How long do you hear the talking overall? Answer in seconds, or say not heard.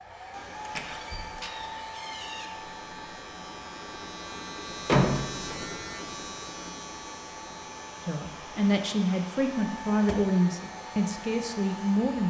4 s.